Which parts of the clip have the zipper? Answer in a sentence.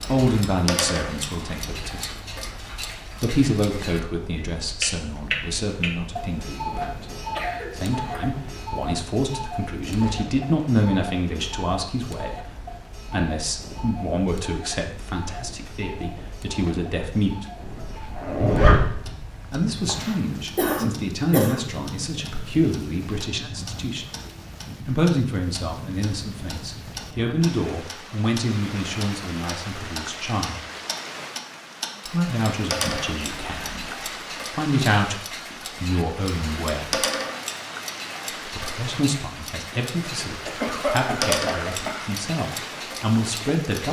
You can hear the zipper from 17.6 to 19.1 s.